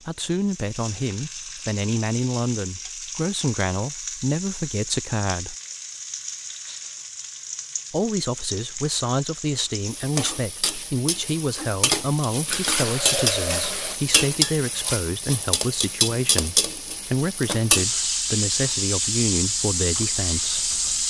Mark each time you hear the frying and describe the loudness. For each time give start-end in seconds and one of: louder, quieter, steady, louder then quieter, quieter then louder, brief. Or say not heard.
0.0-21.0 louder.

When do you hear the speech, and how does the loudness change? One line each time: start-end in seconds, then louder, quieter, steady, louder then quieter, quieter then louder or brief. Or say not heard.
0.1-5.5 steady
7.9-21.0 steady.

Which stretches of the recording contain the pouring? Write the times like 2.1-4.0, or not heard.
12.4-14.0.